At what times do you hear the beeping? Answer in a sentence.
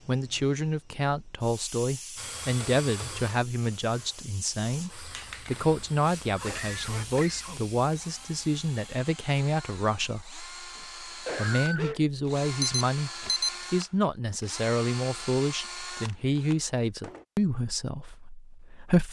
The beeping can be heard from 12.6 to 13.5 s.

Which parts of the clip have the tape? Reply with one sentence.
The tape can't be heard in this clip.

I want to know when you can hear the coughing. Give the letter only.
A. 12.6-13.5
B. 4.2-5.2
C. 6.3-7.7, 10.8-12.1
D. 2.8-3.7
C.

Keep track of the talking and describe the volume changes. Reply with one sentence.
The loudness of the talking stays about the same.